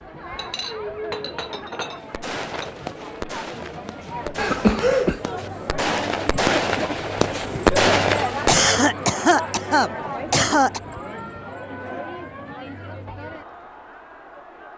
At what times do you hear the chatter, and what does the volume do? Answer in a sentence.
The chatter can be heard from 0.0 to 14.7 s, getting louder then quieter.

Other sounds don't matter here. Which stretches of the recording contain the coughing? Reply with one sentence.
You can hear the coughing from 4.3 to 5.2 s and from 8.4 to 10.8 s.